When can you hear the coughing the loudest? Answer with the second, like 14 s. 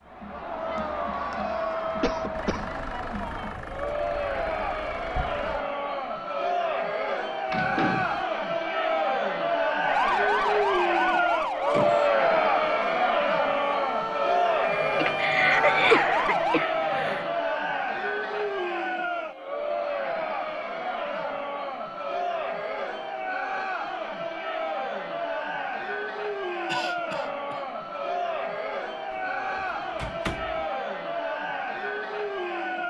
16 s.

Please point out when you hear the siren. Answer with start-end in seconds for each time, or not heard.
9.8-16.6.